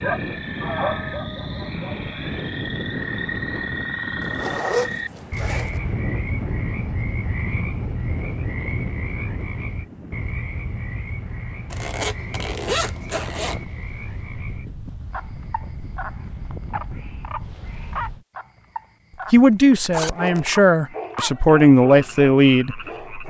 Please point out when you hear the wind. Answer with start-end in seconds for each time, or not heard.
0.0-18.2.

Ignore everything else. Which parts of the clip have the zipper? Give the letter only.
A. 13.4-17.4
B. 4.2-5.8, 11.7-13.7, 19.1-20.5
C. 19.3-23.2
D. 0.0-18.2
B.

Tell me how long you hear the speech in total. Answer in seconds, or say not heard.
4 s.